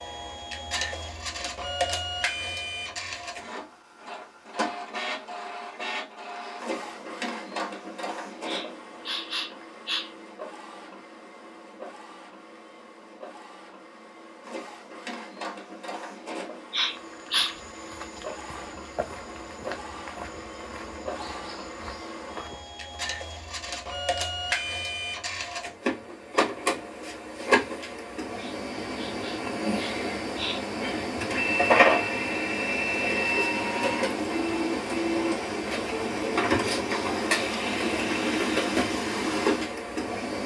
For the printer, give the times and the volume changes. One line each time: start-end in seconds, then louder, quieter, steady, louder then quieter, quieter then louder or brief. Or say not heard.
0.0-40.4 quieter then louder.